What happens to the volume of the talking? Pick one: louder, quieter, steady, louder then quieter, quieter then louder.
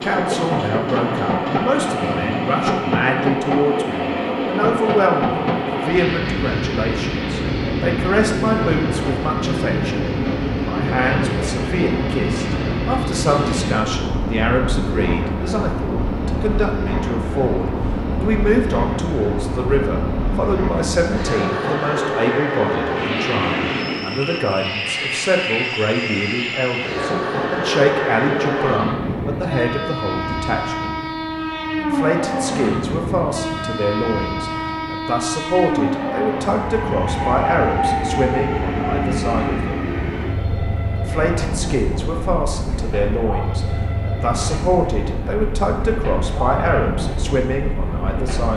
steady.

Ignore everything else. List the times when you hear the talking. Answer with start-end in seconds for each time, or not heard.
0.0-30.9, 31.8-39.8, 41.0-48.5.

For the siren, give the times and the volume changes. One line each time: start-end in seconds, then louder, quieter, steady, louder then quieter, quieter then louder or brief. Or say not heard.
not heard.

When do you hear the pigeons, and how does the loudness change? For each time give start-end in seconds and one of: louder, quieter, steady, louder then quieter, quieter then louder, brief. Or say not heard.
not heard.